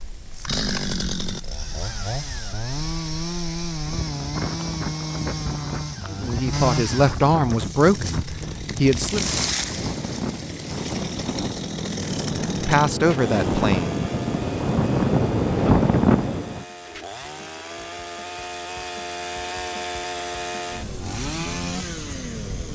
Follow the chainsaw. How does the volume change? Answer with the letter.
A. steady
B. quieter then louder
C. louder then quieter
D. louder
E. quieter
B.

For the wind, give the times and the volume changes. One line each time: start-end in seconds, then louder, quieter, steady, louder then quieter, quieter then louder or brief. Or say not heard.
0.0-16.6 louder.